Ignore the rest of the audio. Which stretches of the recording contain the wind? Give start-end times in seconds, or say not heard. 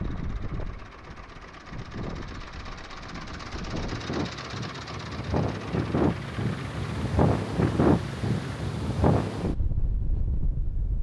0.0-10.9.